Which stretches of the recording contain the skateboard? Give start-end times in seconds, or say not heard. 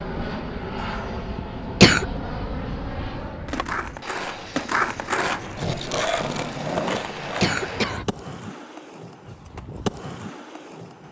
3.5-11.0.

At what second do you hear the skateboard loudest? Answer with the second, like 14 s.
5 s.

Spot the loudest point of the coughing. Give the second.
2 s.